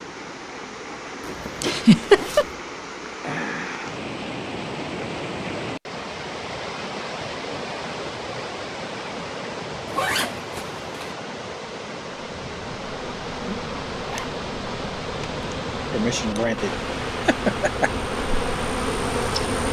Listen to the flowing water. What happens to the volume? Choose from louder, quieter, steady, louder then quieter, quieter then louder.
steady.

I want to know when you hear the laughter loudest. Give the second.
2 s.